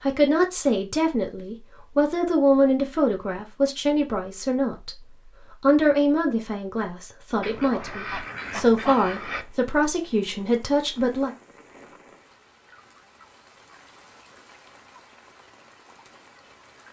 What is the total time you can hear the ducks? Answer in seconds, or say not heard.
2 s.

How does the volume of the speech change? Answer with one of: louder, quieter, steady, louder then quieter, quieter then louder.
steady.